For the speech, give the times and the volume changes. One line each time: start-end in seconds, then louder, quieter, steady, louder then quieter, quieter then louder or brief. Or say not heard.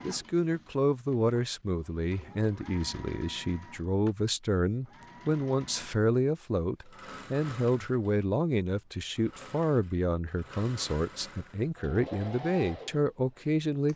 0.0-13.9 steady.